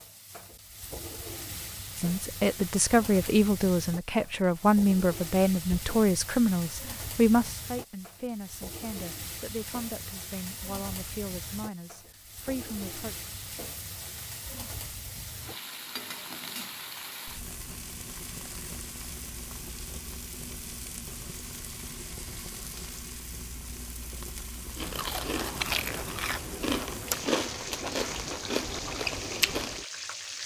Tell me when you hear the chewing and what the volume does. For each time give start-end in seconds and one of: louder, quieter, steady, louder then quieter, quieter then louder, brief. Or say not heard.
24.8-29.9 steady.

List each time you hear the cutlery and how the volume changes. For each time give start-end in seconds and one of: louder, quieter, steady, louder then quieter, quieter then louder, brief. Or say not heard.
not heard.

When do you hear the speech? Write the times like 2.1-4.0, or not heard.
1.9-13.2.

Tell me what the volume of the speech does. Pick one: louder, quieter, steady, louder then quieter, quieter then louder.
quieter.